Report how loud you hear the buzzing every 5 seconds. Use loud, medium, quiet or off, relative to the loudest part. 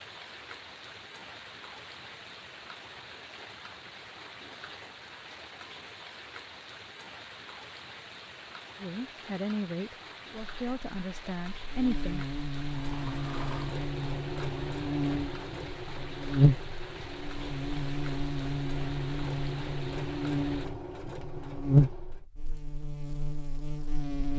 off, off, medium, loud, loud.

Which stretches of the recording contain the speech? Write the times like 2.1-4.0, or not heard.
8.8-12.2.